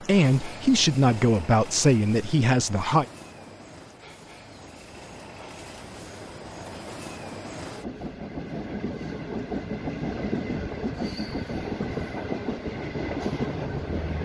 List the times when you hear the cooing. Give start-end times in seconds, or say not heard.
not heard.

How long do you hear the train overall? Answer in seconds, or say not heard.
14 s.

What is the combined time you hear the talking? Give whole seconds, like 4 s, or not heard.
3 s.